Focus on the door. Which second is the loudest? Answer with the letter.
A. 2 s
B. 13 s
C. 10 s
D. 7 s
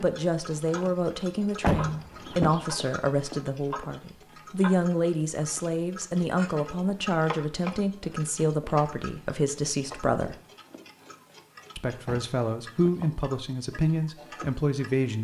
A.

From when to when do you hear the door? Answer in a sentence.
You can hear the door from 1.6 to 2.6 s and from 12.1 to 13.1 s.